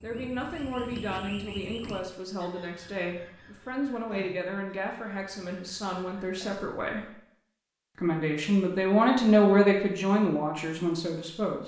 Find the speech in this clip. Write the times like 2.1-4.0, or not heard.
0.0-7.1, 8.0-11.6.